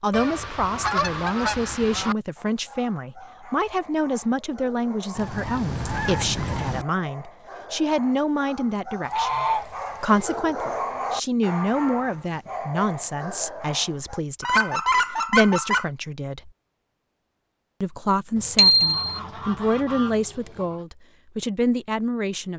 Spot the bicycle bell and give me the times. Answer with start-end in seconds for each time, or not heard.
18.6-19.1.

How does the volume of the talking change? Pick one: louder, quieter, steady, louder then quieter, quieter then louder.
steady.